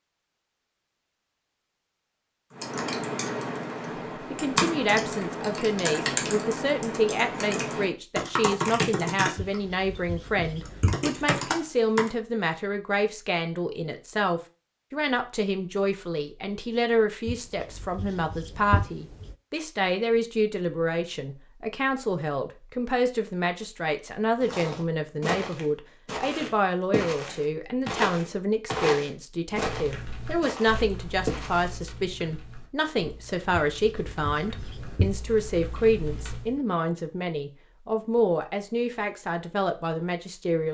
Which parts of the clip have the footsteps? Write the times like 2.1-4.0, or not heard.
24.4-31.8.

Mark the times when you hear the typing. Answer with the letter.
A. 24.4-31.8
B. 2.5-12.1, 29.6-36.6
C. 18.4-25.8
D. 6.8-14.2
B.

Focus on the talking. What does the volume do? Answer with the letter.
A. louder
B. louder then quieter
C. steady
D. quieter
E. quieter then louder
C.